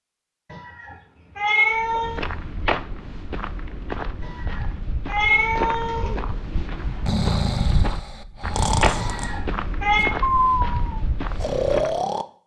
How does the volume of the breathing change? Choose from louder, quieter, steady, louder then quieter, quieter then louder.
quieter then louder.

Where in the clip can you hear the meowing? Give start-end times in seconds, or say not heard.
0.5-2.2, 4.2-6.2, 8.9-10.2.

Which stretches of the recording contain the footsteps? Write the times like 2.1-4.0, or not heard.
1.7-12.0.